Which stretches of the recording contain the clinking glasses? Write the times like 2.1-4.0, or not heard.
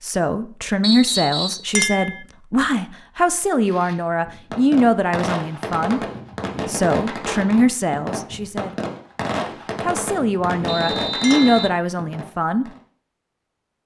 1.8-2.2, 11.2-11.7.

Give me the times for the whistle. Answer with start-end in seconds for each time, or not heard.
0.8-1.6, 10.7-11.8.